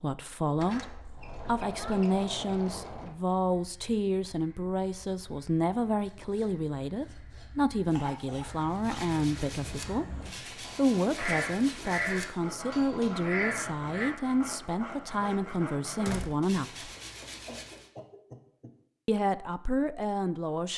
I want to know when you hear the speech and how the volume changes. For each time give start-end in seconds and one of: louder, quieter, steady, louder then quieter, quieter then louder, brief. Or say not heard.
0.0-16.9 steady
19.1-20.7 brief.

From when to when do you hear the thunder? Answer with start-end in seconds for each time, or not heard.
not heard.